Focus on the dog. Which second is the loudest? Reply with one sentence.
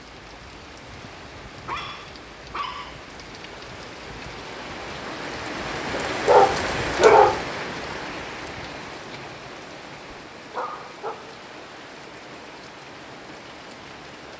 The volume of the dog peaks at 7 seconds.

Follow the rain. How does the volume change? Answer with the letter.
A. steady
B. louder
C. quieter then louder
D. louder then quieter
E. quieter
D.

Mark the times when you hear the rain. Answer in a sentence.
You can hear the rain from 0.0 to 14.3 s.